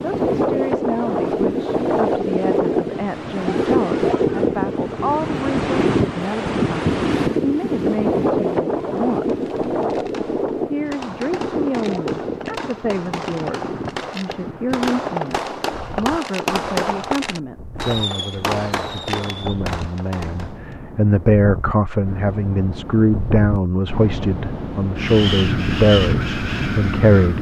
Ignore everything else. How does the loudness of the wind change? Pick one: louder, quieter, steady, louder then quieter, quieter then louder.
quieter then louder.